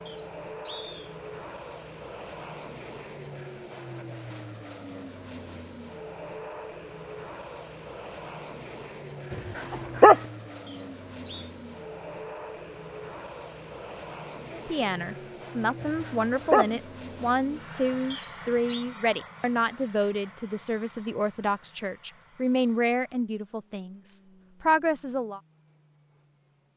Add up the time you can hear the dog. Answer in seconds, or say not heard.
2 s.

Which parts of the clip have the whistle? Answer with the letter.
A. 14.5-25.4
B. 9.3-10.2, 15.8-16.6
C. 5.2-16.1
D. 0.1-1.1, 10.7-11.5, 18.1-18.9
D.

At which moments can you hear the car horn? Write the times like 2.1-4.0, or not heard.
not heard.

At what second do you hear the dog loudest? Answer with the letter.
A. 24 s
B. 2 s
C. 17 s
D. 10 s
D.